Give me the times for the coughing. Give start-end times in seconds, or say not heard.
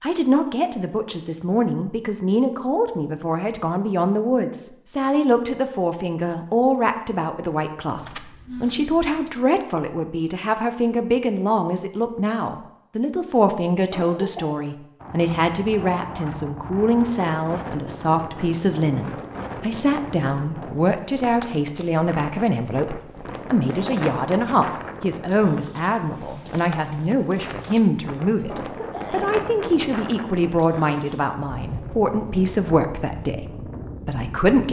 13.9-14.7, 28.4-29.2.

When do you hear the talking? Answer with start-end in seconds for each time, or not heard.
0.0-34.6.